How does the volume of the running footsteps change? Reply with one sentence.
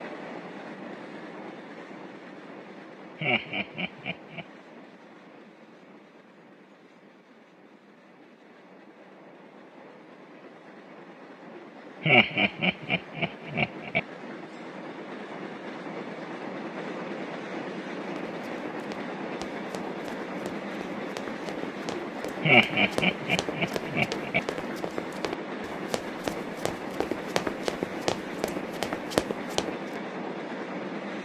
The volume of the running footsteps goes up.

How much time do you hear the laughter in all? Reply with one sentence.
You can hear the laughter for 5 seconds altogether.